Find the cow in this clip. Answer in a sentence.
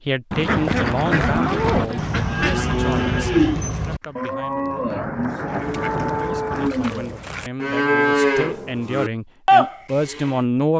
You can hear the cow from 1.2 to 10.4 s.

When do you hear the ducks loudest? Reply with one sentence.
The loudest moment of the ducks is at 1 second.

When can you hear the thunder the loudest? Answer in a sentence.
The volume of the thunder peaks at 6 seconds.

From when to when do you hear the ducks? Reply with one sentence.
The ducks can be heard from 0.3 to 3.3 s and from 5.5 to 7.5 s.